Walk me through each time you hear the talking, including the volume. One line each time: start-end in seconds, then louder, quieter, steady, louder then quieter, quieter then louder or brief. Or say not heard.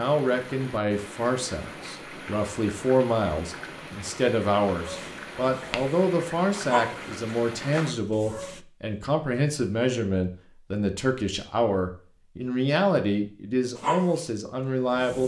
0.0-15.2 steady.